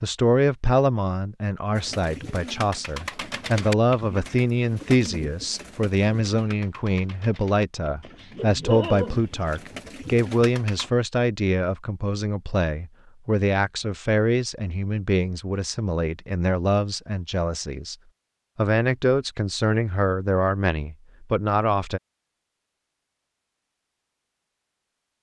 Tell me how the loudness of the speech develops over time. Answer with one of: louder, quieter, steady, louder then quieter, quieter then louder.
steady.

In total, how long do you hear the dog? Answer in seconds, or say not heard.
2 s.